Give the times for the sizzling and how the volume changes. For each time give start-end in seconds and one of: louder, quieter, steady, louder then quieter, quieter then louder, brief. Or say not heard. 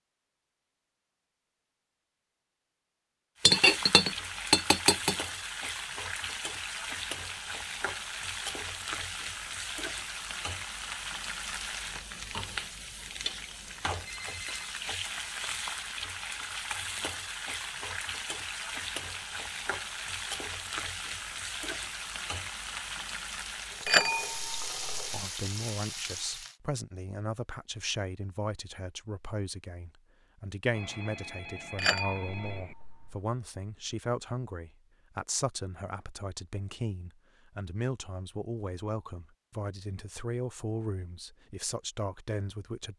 3.4-26.6 steady.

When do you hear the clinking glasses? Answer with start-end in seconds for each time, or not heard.
3.4-5.2, 23.9-25.2, 31.8-33.1.